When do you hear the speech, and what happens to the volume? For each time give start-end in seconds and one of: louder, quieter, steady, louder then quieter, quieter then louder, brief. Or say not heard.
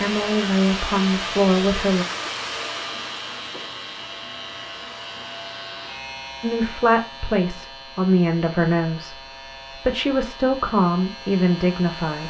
0.0-2.0 brief
6.4-12.2 quieter then louder.